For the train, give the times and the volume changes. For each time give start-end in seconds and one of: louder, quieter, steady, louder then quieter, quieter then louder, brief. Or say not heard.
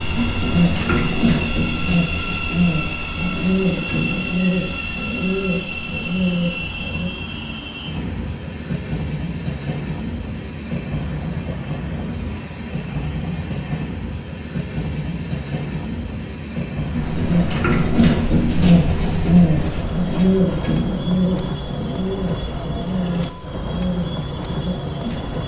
0.0-25.4 steady.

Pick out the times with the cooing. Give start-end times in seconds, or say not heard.
0.0-7.1, 16.9-25.4.